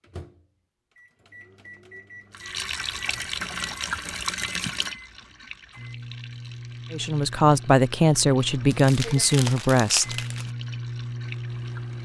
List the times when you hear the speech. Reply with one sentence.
You can hear the speech from 6.9 to 10.2 s.